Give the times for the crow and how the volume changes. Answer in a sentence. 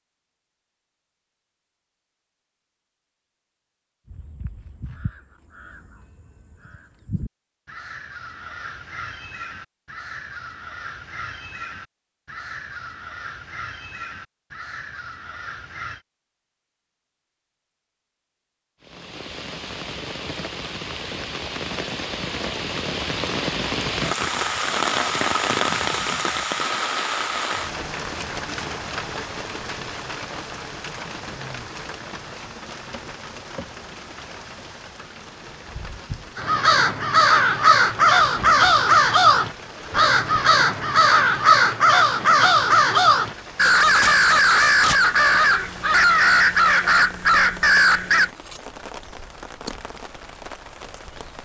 You can hear the crow from 4.0 to 16.0 s, getting louder; and from 36.4 to 48.3 s, at a steady volume.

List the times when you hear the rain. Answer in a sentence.
You can hear the rain from 18.8 to 51.4 s.